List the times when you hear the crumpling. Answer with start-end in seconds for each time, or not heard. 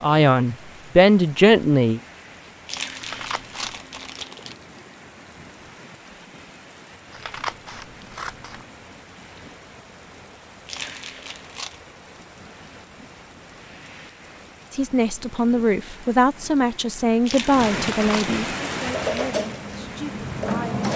2.6-4.5, 10.7-11.8, 17.2-18.4.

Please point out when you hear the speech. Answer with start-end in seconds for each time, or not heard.
0.0-2.0, 14.7-20.9.